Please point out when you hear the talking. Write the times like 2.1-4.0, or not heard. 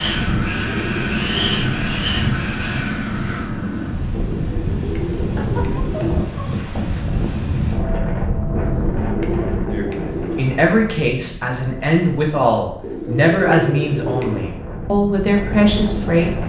9.7-16.4.